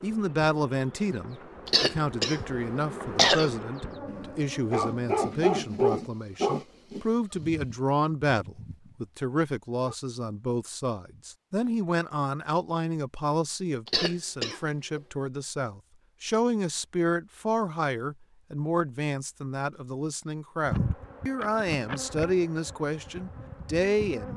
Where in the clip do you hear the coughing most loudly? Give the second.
3 s.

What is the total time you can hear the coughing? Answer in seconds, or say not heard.
3 s.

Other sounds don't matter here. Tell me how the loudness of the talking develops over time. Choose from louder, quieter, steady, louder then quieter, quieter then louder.
steady.